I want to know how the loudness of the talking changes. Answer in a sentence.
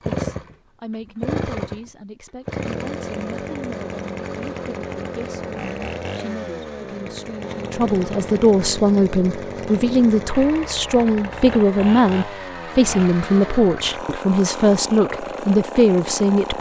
The loudness of the talking goes up.